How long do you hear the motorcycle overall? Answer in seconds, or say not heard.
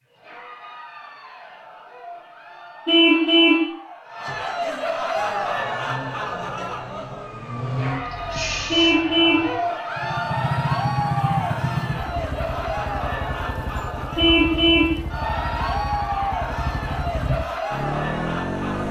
9 s.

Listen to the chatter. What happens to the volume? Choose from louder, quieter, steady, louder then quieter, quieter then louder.
louder.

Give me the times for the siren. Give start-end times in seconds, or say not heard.
5.1-9.6.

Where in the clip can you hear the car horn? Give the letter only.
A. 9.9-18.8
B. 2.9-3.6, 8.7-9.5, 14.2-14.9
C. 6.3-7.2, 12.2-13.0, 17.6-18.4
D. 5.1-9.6
B.